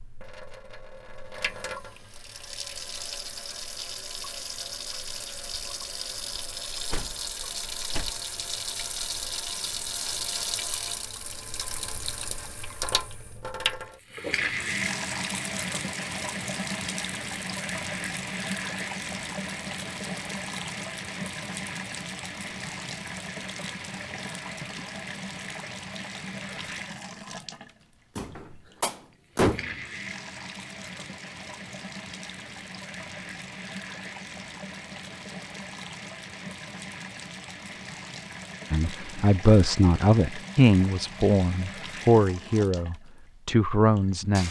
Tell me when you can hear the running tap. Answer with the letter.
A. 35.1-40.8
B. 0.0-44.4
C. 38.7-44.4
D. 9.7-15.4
B.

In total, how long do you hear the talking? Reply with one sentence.
The talking can be heard for 6 seconds in total.